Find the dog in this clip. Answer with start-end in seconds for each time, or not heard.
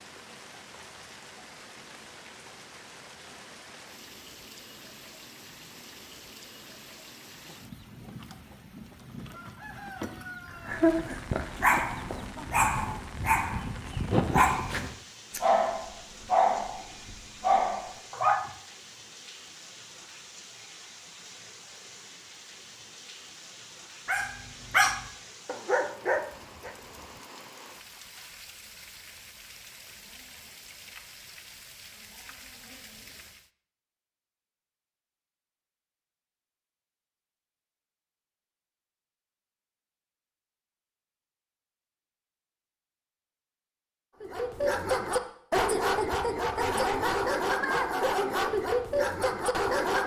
10.6-18.5, 24.1-26.7, 44.2-50.0.